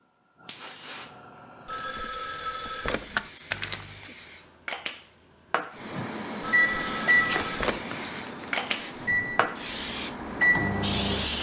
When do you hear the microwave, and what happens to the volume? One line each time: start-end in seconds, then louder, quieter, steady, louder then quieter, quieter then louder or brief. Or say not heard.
5.8-11.3 quieter then louder.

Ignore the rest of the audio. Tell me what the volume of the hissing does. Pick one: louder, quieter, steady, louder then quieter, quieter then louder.
louder.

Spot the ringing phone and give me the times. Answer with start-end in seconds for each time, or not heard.
1.6-3.3, 6.4-7.8.